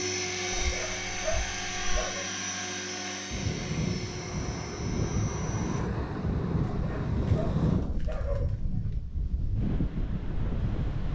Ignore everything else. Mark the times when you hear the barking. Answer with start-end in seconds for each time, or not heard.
0.5-2.2, 6.7-9.1.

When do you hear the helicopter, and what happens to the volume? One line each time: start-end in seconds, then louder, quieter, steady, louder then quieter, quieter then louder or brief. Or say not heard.
0.0-5.8 quieter.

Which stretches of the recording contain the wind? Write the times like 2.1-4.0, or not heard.
3.3-11.1.